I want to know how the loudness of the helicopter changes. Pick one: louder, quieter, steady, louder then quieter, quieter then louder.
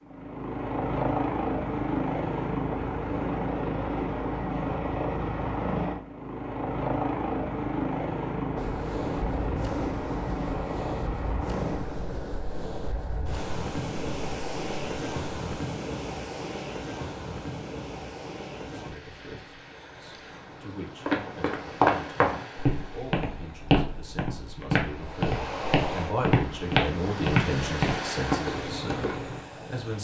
quieter.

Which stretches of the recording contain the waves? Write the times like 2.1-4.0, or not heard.
8.6-29.9.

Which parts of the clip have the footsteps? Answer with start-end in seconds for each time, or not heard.
21.1-29.4.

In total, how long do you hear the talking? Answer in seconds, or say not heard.
11 s.